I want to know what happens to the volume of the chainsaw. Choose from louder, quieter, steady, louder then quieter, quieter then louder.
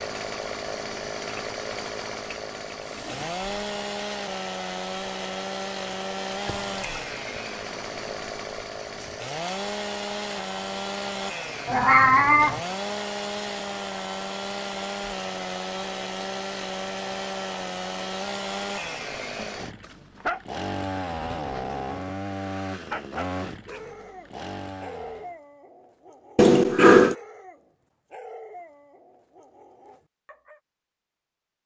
steady.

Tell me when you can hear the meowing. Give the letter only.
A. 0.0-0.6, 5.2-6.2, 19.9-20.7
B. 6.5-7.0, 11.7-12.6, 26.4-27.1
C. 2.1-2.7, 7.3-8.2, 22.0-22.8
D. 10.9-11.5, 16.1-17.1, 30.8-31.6
B.